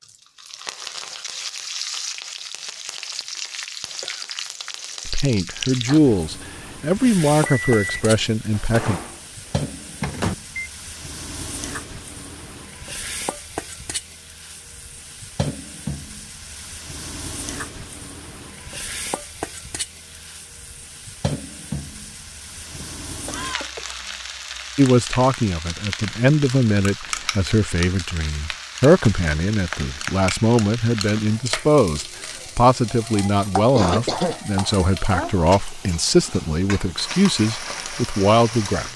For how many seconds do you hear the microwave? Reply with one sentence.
The microwave can be heard for 3 seconds in total.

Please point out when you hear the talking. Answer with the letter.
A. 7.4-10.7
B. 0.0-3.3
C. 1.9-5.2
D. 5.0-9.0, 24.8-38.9
D.